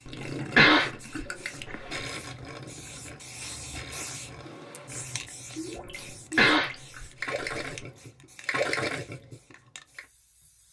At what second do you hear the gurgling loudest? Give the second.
9 s.